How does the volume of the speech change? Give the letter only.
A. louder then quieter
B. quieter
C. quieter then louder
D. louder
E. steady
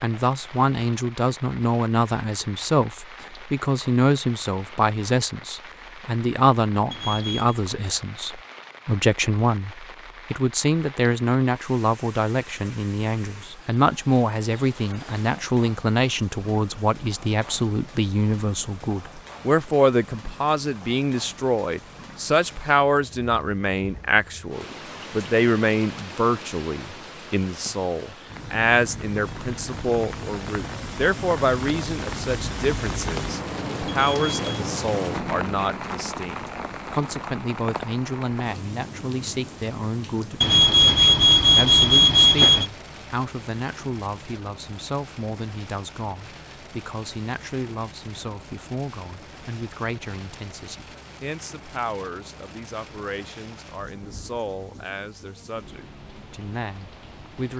B.